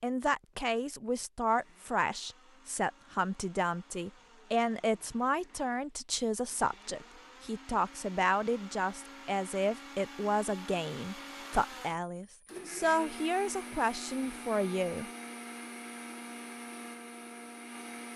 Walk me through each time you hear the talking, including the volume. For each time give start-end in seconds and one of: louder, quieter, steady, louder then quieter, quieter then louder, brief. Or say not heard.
0.0-15.1 steady.